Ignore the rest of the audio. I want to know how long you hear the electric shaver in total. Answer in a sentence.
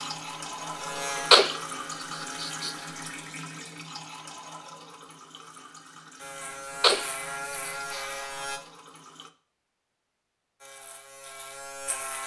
The electric shaver can be heard for 7 seconds in total.